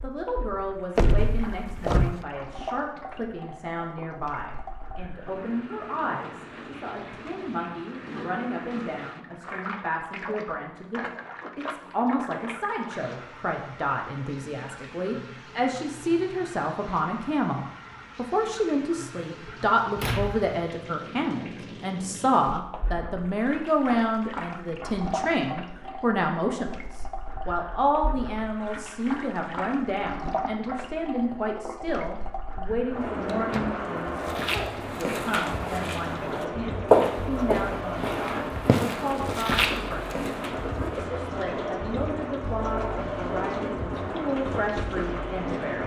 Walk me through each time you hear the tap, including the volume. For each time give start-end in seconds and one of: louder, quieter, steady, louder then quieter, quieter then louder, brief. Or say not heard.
0.0-45.8 louder.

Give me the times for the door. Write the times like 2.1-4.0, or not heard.
0.9-2.2, 19.4-20.5, 33.2-33.9.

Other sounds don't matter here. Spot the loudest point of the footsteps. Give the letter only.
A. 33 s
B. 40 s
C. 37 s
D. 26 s
C.